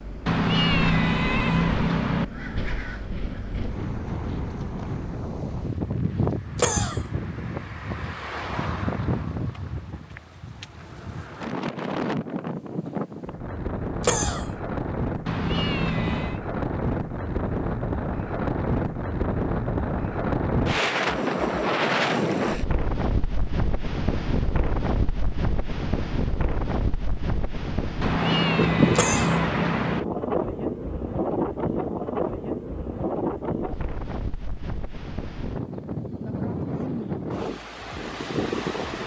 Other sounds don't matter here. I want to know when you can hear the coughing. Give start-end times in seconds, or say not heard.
6.5-7.0, 14.0-14.5, 28.9-29.4.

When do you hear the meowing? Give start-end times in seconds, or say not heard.
0.2-2.2, 15.2-16.4, 28.0-30.1.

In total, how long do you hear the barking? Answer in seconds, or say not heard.
not heard.